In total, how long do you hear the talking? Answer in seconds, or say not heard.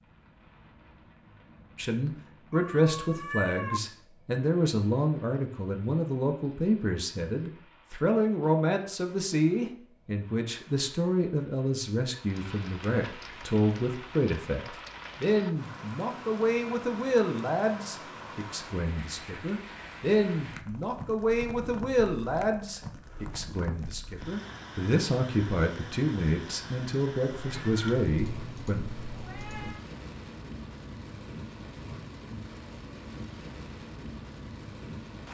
27 s.